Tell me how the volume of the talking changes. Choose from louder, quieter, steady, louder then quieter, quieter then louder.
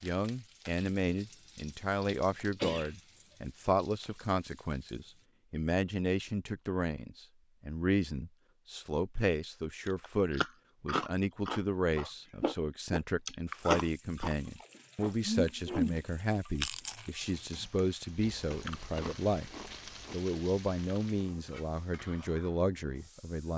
steady.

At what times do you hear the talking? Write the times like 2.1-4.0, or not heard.
0.0-19.5, 20.1-23.5.